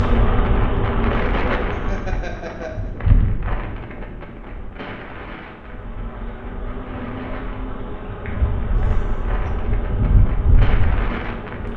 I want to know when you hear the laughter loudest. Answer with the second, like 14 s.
2 s.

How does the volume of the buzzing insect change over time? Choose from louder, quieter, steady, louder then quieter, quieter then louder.
quieter then louder.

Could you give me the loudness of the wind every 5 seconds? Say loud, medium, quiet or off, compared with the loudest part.
loud, medium, loud.